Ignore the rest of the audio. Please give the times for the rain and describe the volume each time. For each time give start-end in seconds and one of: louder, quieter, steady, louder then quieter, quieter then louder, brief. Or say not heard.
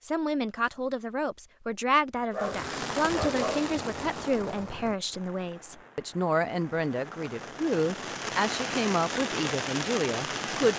2.3-10.7 quieter then louder.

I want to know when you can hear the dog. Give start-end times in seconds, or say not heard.
2.2-3.7.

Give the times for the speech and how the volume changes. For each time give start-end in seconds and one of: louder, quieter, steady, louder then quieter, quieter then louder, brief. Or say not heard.
0.0-10.7 steady.